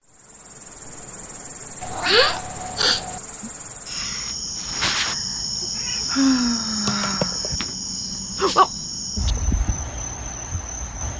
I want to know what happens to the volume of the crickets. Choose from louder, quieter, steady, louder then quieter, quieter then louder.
louder then quieter.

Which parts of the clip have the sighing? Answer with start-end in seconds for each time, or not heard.
2.0-3.5, 6.0-7.4.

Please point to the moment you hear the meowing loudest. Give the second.
2 s.